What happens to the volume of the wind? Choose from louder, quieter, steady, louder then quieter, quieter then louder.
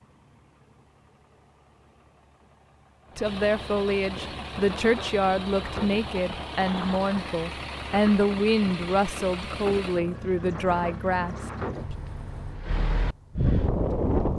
louder.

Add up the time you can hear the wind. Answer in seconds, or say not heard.
10 s.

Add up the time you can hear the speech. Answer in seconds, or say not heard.
9 s.